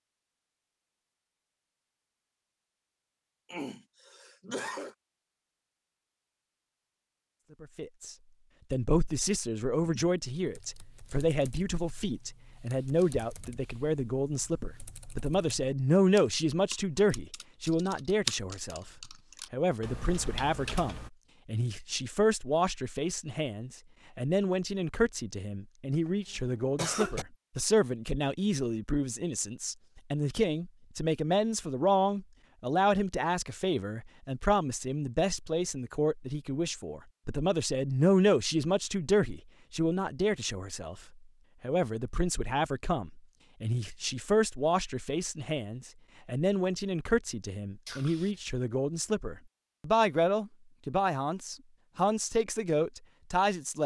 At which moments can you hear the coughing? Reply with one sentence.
The coughing can be heard from 3.5 to 5.0 s, from 25.9 to 27.2 s and from 47.9 to 48.4 s.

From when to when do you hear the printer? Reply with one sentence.
The printer can't be heard in this clip.